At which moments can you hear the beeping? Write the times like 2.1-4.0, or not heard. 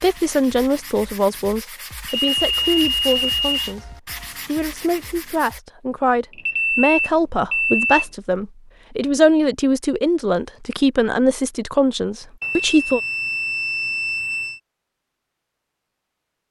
2.3-3.8, 6.3-8.1, 12.4-14.6.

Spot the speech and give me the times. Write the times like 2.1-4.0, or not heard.
0.0-3.9, 4.5-13.0.